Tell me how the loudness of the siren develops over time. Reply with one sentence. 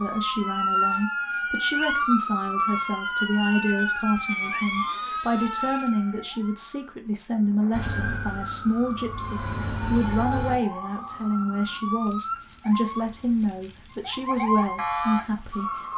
The volume of the siren goes down, then up.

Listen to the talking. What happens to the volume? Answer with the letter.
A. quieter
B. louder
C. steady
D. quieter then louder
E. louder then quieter
C.